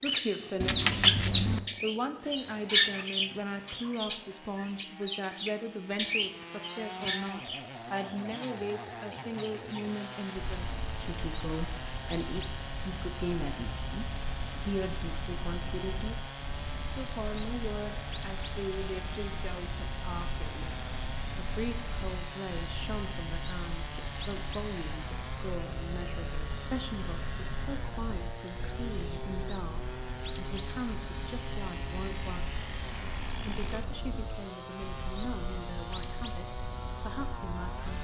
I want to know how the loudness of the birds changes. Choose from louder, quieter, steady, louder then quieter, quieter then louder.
quieter.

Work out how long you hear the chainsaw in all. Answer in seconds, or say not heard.
38 s.